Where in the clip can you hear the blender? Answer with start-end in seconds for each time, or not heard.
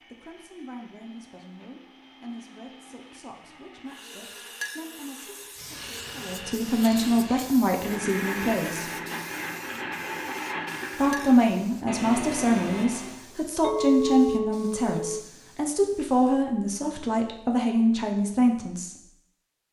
0.0-13.2.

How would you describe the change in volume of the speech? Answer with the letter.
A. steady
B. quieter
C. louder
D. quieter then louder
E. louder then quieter
C.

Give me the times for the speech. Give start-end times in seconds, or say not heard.
0.0-8.9, 10.9-18.9.